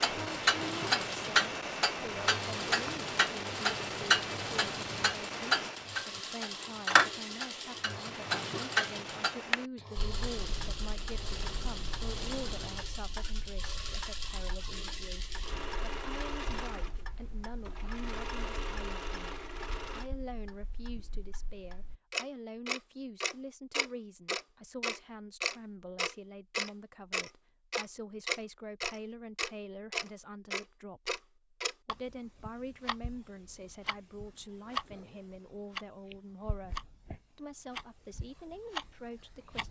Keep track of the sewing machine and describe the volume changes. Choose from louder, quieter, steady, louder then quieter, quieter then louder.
steady.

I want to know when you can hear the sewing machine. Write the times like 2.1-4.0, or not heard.
0.1-20.1.